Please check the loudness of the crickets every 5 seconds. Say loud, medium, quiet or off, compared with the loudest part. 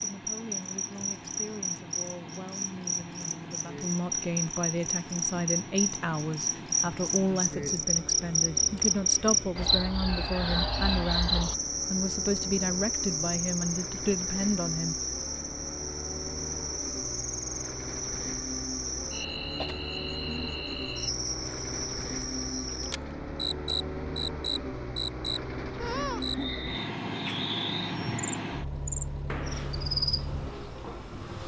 medium, loud, loud, medium, medium, medium, medium.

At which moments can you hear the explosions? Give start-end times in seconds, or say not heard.
29.2-29.9.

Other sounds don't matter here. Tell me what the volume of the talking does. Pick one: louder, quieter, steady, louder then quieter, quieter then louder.
louder.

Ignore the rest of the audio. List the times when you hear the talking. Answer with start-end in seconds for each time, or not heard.
0.0-14.9.